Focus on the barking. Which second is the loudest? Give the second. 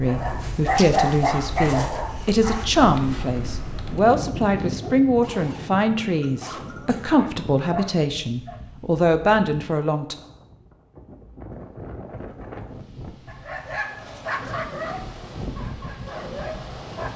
1 s.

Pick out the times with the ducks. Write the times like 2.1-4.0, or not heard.
not heard.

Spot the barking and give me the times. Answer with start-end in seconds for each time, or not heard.
0.0-8.6, 13.2-17.1.